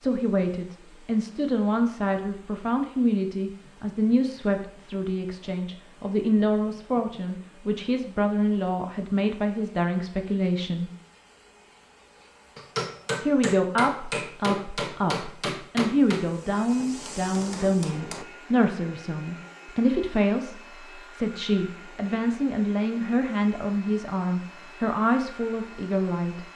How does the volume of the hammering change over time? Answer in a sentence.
The loudness of the hammering goes down.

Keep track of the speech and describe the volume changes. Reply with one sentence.
The loudness of the speech stays about the same.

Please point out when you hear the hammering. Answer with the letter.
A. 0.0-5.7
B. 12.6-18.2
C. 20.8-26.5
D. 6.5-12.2
B.